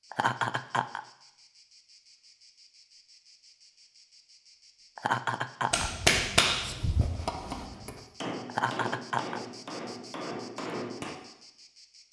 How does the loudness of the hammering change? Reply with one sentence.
The volume of the hammering goes down.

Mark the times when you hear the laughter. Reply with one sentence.
The laughter can be heard from 0.1 to 1.0 s, from 5.0 to 5.9 s and from 8.4 to 9.4 s.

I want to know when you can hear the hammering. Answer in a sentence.
You can hear the hammering from 5.7 to 11.2 s.